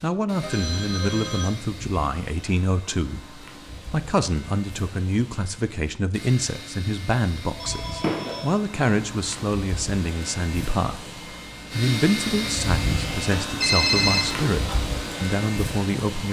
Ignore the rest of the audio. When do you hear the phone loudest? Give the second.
14 s.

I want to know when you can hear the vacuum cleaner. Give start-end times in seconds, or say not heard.
0.0-16.2.